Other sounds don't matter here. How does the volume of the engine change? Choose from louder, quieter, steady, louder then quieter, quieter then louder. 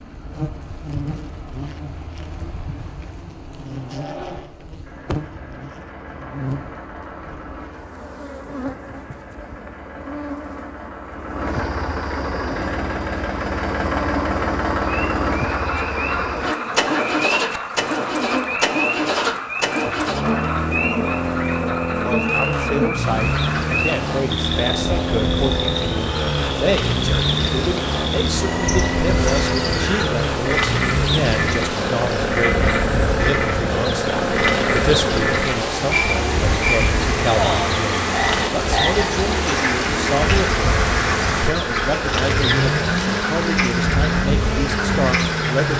louder.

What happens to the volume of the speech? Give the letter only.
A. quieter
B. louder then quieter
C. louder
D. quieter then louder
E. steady
E.